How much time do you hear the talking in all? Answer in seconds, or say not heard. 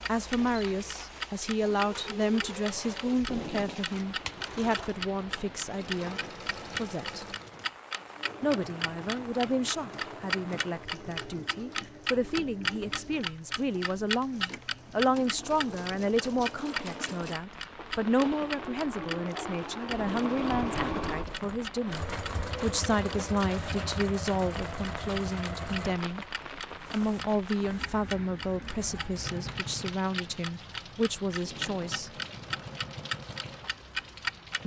31 s.